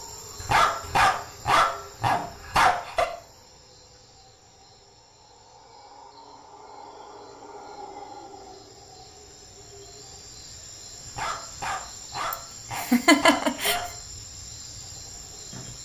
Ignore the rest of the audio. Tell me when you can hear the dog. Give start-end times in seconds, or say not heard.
0.4-3.0, 11.1-14.0.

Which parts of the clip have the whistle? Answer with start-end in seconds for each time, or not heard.
not heard.